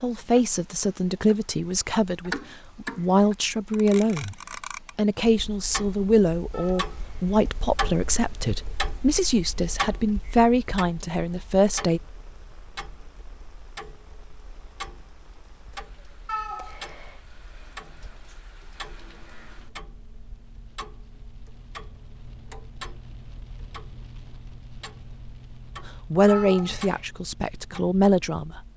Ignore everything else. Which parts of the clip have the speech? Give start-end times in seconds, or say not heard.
0.0-4.3, 5.0-12.0, 26.1-28.6.